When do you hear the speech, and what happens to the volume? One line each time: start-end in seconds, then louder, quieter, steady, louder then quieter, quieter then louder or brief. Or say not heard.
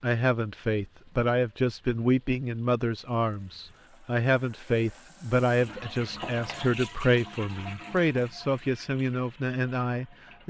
0.0-10.4 steady.